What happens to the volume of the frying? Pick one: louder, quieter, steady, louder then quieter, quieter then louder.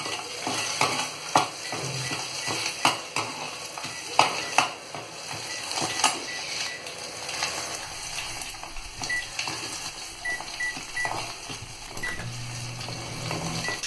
quieter.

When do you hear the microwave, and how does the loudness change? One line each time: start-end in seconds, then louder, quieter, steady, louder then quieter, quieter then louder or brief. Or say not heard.
0.0-13.8 louder.